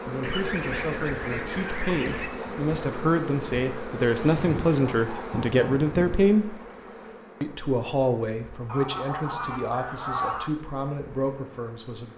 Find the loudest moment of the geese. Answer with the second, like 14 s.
10 s.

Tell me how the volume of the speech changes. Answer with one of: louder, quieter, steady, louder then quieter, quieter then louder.
louder then quieter.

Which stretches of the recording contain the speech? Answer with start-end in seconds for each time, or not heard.
0.1-6.5, 7.4-12.1.